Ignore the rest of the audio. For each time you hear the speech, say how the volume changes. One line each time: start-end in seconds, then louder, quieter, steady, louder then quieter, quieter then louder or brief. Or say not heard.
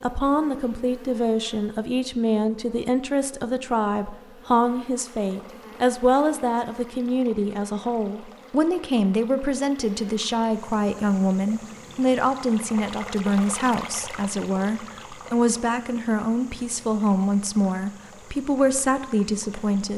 0.0-19.9 steady.